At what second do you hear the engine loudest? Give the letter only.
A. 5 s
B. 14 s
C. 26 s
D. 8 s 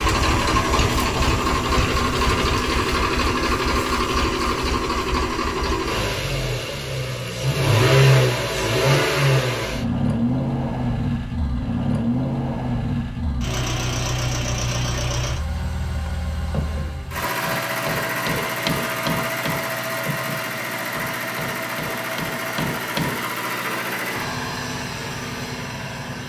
D.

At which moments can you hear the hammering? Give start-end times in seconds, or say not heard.
16.1-23.3.